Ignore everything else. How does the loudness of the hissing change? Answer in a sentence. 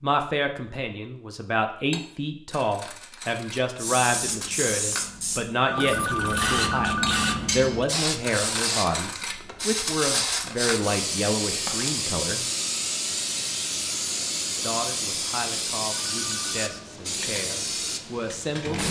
The loudness of the hissing stays about the same.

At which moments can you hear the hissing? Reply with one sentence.
You can hear the hissing from 3.8 to 18.8 s.